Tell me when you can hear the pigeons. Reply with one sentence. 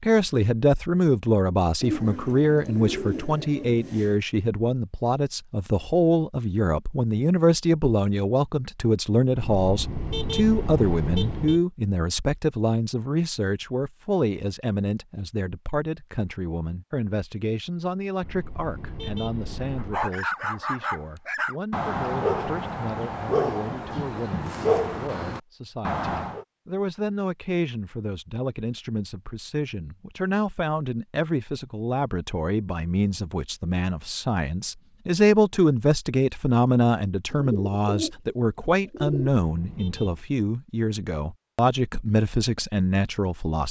The pigeons can be heard from 1.8 to 4.2 s and from 37.3 to 39.3 s.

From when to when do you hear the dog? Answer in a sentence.
The dog can be heard from 19.8 to 26.4 s.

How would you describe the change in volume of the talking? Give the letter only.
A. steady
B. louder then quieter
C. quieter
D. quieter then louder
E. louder
D.